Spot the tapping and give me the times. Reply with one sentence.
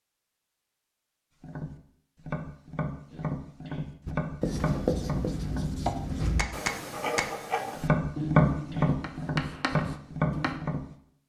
The tapping can be heard from 1.4 to 10.8 s.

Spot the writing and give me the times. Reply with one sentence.
You can hear the writing from 4.0 to 10.6 s.